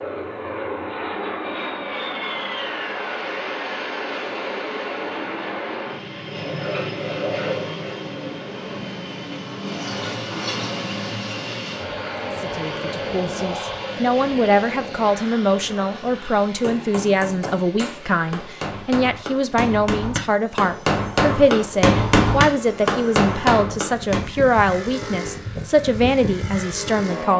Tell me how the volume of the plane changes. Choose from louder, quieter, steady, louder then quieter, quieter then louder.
quieter then louder.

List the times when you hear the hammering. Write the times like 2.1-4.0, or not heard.
16.6-24.2.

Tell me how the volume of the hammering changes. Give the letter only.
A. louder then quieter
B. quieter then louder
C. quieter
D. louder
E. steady
D.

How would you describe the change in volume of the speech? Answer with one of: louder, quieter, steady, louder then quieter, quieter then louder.
steady.